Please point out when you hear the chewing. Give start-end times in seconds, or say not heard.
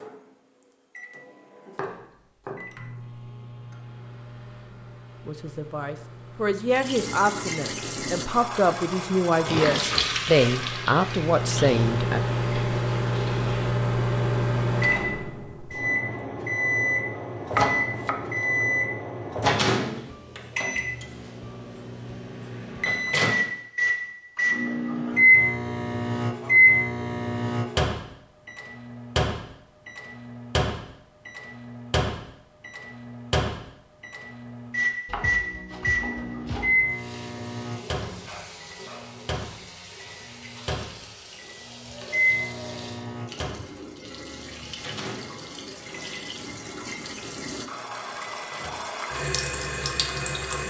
9.4-11.7.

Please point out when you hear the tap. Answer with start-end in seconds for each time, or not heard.
6.7-13.6, 36.9-50.6.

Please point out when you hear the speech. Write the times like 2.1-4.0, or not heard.
5.2-12.2.